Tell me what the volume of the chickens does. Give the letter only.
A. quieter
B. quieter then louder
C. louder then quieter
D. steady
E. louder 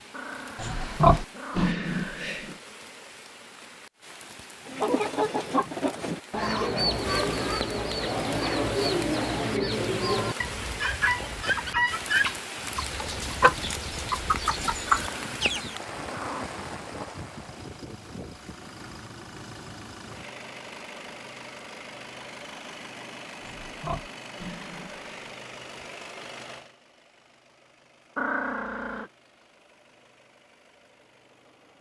D.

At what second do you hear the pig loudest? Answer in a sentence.
The loudest moment of the pig is at 1 second.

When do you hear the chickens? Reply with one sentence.
You can hear the chickens from 4.7 to 15.8 s.